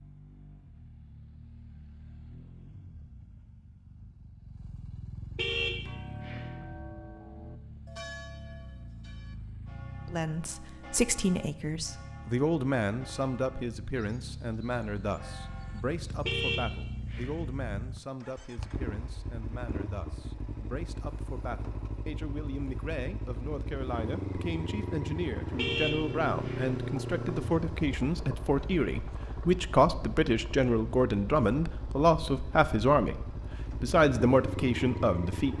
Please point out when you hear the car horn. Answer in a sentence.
The car horn can be heard from 5.3 to 6.7 s, from 16.2 to 17.5 s and from 25.6 to 26.7 s.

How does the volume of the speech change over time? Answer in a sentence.
The volume of the speech goes down, then up.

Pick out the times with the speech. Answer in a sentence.
The speech can be heard from 10.1 to 35.5 s.